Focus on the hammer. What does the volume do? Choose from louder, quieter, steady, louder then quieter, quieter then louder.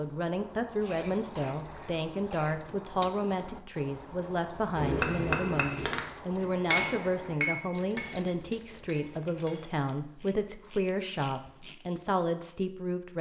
quieter.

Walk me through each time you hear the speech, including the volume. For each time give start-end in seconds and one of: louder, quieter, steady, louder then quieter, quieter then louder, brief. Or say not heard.
0.0-13.1 steady.